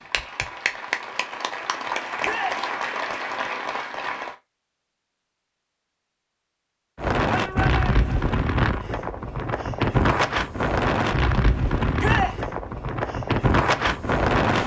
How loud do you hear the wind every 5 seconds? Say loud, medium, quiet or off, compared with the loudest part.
off, loud, loud.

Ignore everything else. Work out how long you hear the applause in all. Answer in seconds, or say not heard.
4 s.